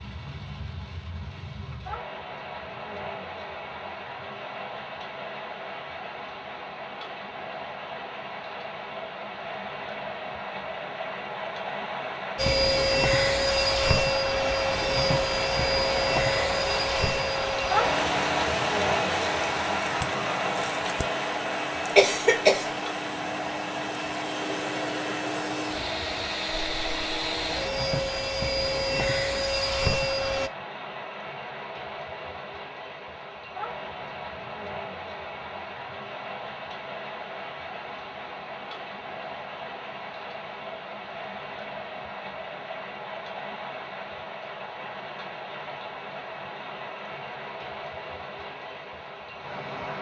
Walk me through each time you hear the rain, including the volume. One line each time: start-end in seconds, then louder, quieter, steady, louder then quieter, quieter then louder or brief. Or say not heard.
0.0-49.9 louder then quieter.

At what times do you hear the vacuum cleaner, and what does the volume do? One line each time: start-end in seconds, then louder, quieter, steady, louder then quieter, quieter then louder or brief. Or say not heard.
12.3-30.5 quieter then louder.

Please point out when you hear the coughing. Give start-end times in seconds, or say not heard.
21.9-22.7.